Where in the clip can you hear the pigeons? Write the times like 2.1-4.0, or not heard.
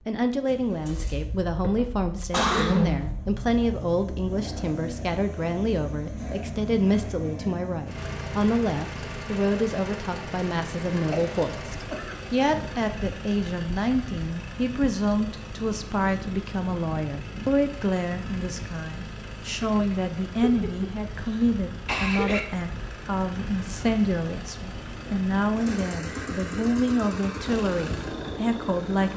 not heard.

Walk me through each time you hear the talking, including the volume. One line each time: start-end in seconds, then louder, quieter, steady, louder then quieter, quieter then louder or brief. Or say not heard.
0.1-29.1 steady.